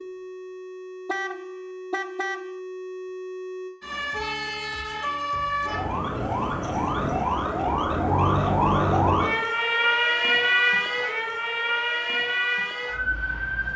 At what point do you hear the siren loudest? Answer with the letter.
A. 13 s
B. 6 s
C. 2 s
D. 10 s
D.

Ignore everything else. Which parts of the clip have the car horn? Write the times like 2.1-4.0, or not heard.
1.1-2.5.